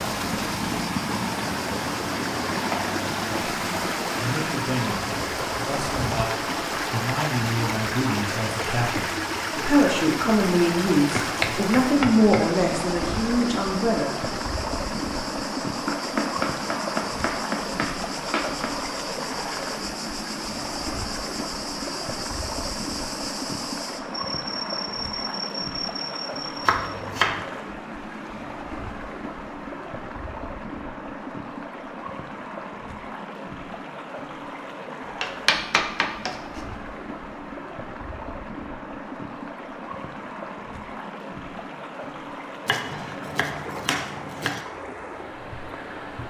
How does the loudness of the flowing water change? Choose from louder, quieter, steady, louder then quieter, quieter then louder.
quieter.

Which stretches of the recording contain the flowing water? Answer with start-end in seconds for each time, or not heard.
0.0-46.2.